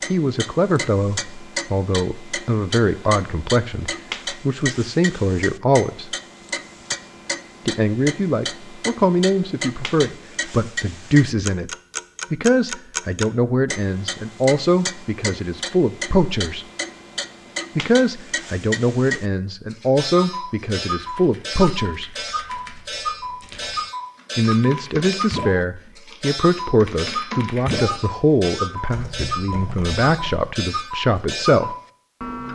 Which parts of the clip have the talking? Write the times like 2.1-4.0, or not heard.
0.1-6.1, 7.7-11.7, 12.3-16.6, 17.8-22.1, 24.4-31.8.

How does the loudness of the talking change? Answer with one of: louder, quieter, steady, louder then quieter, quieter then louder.
steady.